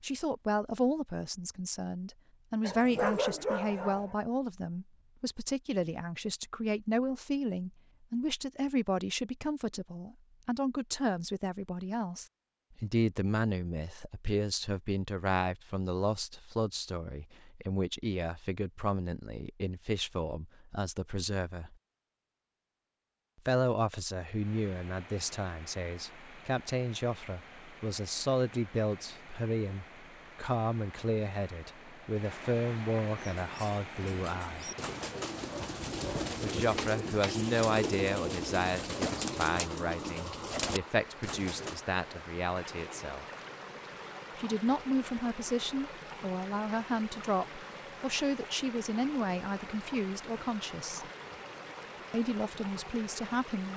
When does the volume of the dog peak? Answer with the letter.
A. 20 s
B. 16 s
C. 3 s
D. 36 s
C.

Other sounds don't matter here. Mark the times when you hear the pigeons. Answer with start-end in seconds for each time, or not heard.
33.1-41.8.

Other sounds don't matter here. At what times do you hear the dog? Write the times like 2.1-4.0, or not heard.
2.6-4.2, 35.5-37.4.